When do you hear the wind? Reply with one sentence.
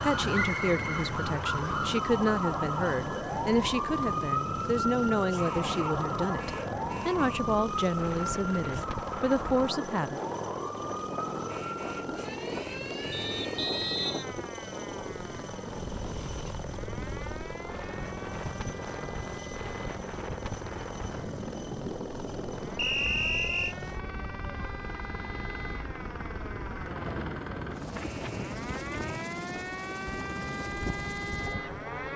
You can hear the wind from 0.0 to 32.1 s.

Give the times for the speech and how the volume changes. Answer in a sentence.
The speech can be heard from 0.0 to 10.2 s, at a steady volume.